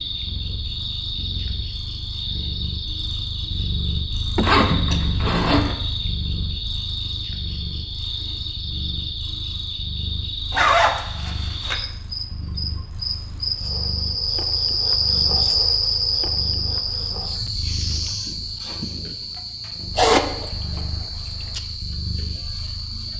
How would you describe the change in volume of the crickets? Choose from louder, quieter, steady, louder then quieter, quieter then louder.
louder then quieter.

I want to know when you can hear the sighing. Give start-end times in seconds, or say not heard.
4.3-5.2, 17.4-19.1.